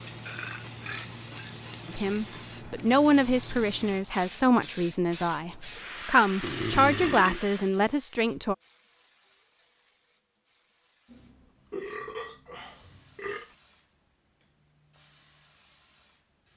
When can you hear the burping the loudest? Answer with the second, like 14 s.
7 s.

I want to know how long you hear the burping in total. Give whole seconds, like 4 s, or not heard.
5 s.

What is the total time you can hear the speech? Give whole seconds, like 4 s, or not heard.
7 s.